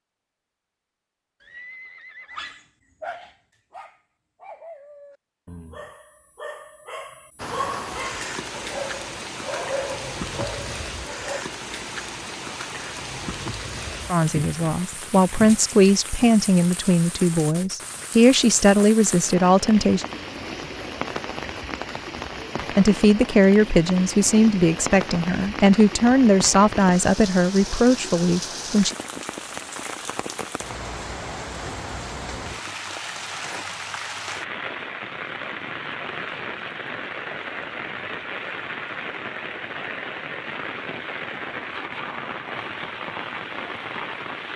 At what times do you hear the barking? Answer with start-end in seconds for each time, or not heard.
2.3-11.4.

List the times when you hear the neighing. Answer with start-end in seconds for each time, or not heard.
1.4-2.5.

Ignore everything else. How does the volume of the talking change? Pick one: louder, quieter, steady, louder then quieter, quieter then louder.
steady.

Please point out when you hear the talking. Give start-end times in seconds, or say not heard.
14.1-20.1, 22.8-28.9.